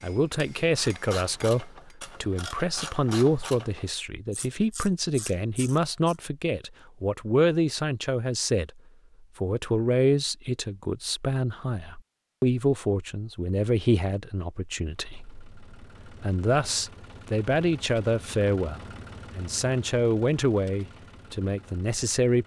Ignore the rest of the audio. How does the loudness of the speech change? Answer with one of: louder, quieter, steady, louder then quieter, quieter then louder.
steady.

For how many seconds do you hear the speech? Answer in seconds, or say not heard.
22 s.